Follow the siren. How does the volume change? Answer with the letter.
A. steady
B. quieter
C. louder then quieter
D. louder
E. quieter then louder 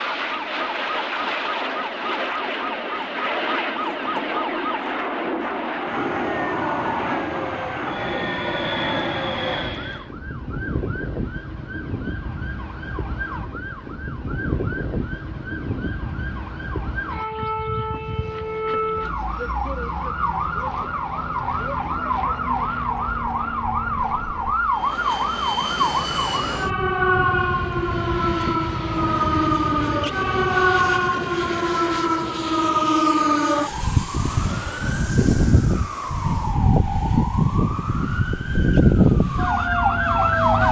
D.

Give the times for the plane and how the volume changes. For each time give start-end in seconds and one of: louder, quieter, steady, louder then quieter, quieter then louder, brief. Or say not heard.
0.0-10.1 steady
17.8-40.6 louder then quieter.